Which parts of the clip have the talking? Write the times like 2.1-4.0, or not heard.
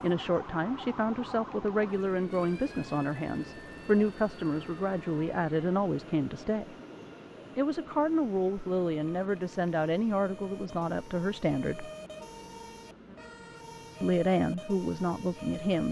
0.0-6.8, 7.5-11.9, 14.0-15.8.